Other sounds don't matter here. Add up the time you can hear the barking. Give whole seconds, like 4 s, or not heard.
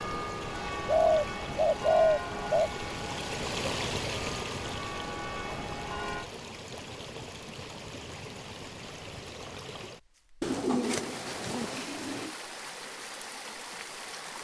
not heard.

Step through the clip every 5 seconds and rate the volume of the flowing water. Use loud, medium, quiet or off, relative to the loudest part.
loud, medium, medium.